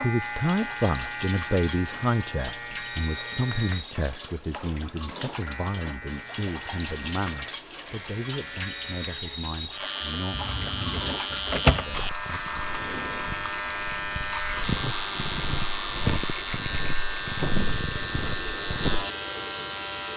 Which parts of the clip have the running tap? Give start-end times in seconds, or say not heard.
0.0-20.1.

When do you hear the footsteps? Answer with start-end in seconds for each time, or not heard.
11.8-19.1.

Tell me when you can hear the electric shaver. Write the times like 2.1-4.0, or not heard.
0.0-20.1.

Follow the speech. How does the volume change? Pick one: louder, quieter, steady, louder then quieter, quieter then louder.
quieter.